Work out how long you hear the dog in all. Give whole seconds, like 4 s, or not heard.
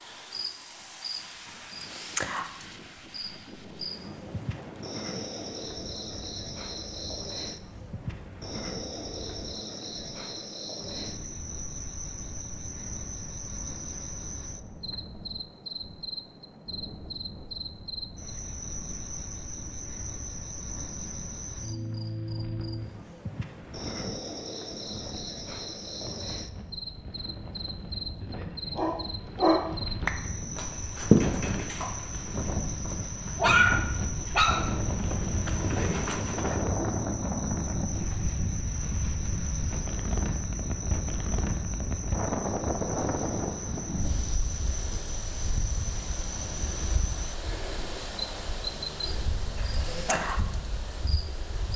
8 s.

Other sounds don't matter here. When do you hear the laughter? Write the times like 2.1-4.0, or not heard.
49.4-50.2.